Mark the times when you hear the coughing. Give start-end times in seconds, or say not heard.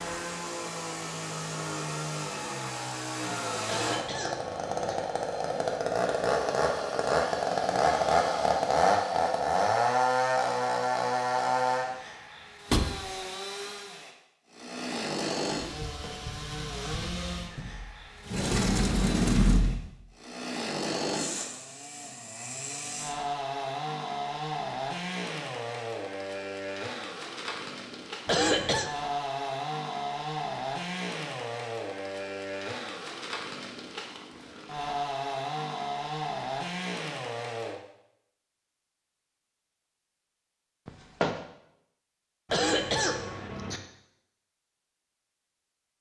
3.6-5.0, 28.2-28.9, 42.5-43.8.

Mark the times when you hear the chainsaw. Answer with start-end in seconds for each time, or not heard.
0.0-37.8.